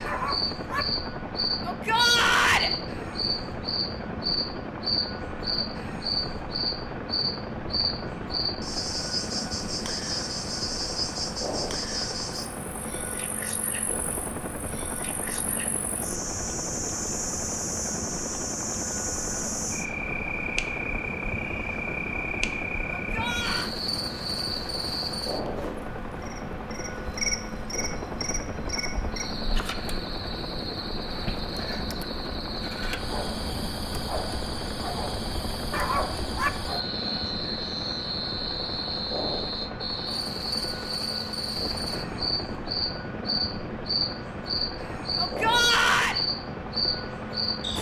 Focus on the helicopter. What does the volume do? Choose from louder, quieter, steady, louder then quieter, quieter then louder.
steady.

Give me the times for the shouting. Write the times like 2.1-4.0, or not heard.
1.6-2.7, 22.9-23.7, 45.1-46.2.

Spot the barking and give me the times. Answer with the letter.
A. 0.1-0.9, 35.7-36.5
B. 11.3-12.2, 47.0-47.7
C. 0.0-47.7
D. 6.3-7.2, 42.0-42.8
A.